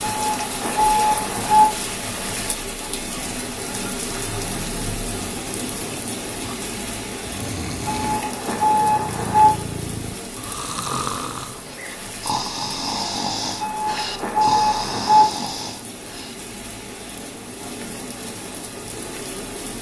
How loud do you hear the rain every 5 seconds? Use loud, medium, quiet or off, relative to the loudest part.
loud, loud, medium, medium.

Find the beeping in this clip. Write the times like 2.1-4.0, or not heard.
0.0-1.6, 7.8-9.5, 13.6-15.2.